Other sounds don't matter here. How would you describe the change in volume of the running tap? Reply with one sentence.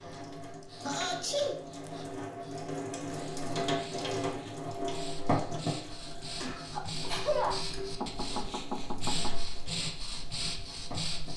The loudness of the running tap goes up, then down.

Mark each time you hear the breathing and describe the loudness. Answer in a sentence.
You can hear the breathing from 0.0 to 11.3 s, getting louder.